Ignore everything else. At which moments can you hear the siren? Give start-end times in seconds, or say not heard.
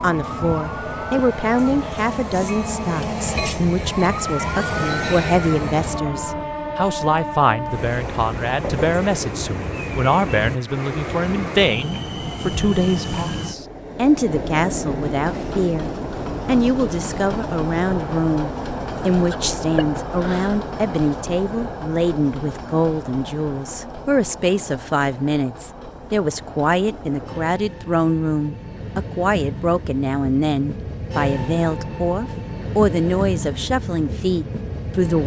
0.1-6.5.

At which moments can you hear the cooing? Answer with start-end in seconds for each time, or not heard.
not heard.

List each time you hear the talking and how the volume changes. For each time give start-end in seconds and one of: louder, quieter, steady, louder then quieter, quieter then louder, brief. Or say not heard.
0.0-35.2 steady.